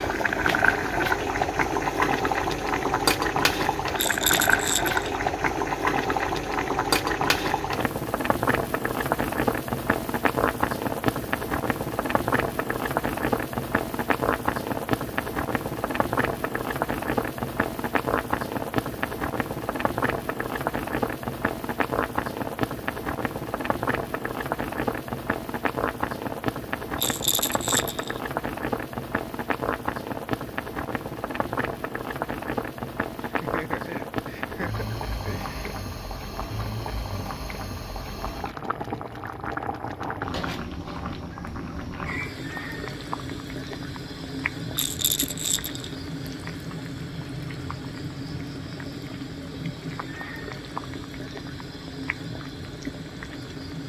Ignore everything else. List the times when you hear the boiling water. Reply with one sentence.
The boiling water can be heard from 0.0 to 53.8 s.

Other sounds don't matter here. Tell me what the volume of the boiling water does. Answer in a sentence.
The volume of the boiling water goes down.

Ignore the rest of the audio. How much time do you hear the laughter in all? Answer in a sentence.
The laughter can be heard for 3 seconds in total.